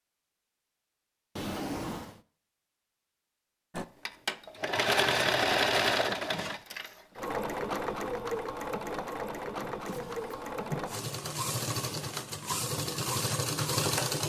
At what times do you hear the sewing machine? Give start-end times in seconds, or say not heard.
3.7-14.2.